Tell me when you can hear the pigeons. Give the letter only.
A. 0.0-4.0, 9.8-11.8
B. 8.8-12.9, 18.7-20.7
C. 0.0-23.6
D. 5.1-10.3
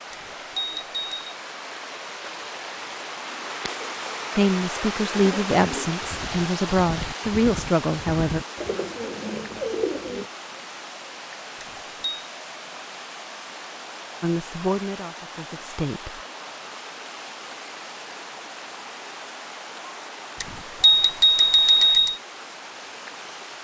D.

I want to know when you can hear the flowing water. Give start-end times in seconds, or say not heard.
0.0-23.6.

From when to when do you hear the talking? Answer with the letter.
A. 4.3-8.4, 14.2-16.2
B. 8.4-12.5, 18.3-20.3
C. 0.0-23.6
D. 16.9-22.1
A.